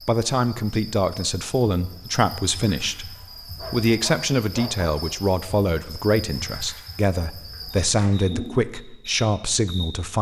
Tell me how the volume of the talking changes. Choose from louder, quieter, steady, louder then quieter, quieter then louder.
steady.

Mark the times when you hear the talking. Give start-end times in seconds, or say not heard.
0.1-10.1.